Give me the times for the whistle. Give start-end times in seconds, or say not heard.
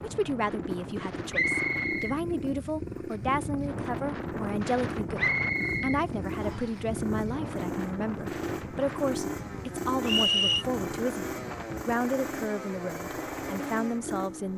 1.3-2.1, 5.2-6.8, 10.1-10.7.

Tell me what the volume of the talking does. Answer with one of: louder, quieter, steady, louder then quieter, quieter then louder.
steady.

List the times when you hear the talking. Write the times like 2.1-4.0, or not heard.
0.0-14.5.